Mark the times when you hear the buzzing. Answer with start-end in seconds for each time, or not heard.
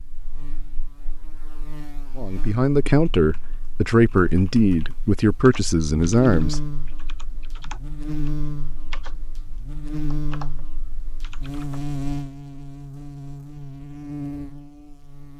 0.0-15.3.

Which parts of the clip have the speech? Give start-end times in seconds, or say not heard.
2.1-6.6.